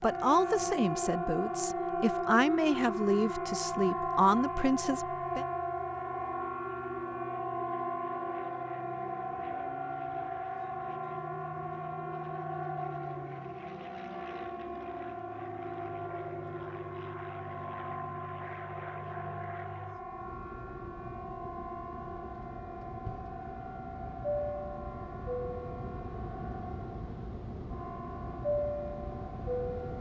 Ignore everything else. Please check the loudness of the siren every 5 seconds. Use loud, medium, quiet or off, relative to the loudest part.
loud, loud, medium, medium, medium, quiet.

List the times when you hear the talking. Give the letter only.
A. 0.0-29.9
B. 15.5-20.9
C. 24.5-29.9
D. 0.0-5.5
D.